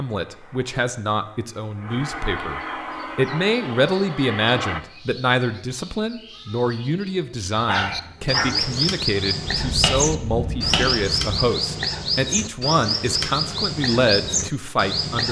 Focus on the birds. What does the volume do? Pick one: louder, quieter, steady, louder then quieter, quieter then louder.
louder.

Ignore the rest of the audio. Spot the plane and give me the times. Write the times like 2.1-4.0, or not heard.
0.0-4.8.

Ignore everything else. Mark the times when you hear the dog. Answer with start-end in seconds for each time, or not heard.
7.5-8.7.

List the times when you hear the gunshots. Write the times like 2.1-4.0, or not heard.
9.4-11.4.